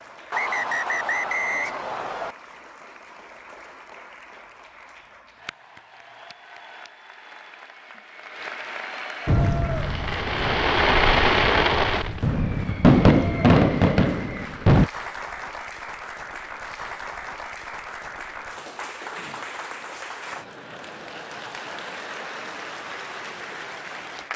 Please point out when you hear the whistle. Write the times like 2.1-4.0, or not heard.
0.3-2.4.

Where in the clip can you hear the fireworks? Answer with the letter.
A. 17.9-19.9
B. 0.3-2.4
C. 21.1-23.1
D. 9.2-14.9
D.